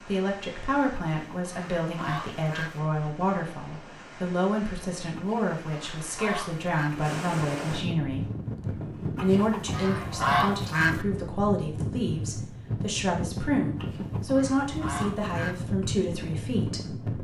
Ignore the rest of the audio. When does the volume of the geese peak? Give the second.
10 s.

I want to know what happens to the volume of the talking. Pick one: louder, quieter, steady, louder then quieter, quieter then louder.
steady.